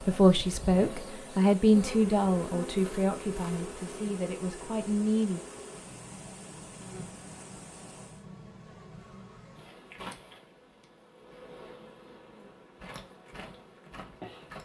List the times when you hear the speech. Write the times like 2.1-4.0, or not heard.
0.0-5.4.